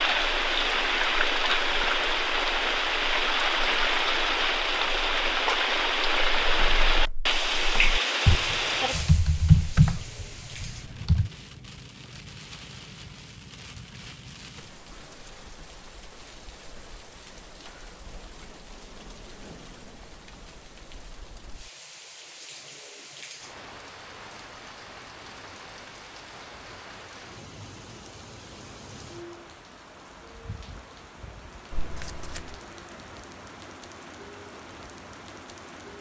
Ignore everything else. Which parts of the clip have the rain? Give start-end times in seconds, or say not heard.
0.0-35.9.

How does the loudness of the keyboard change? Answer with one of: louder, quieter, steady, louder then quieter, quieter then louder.
louder.